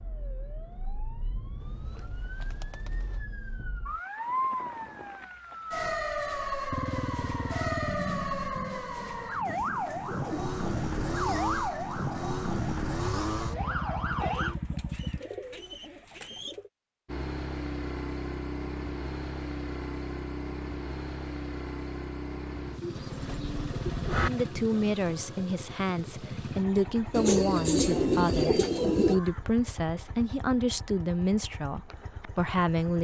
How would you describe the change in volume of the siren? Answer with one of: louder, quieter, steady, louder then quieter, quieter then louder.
louder.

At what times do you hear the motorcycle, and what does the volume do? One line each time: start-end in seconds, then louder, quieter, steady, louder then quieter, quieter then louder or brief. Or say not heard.
6.7-15.2 quieter then louder
17.1-32.9 quieter.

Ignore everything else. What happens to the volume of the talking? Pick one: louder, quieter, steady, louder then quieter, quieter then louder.
steady.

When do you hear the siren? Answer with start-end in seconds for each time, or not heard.
0.0-14.6.